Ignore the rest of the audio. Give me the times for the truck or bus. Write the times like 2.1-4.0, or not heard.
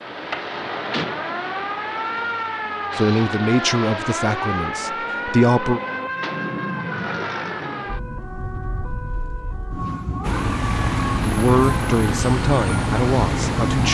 10.2-13.8.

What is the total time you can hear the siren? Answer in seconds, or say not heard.
14 s.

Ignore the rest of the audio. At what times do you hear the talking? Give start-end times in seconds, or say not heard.
3.0-5.8, 11.2-13.8.